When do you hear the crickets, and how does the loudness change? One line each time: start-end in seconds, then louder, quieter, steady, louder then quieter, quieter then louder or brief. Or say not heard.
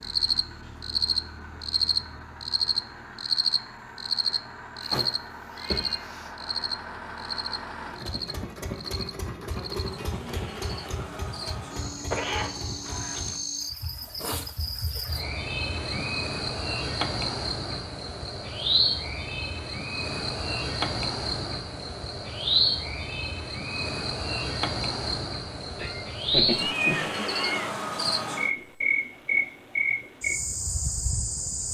0.0-31.6 quieter then louder.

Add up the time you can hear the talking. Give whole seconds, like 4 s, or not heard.
not heard.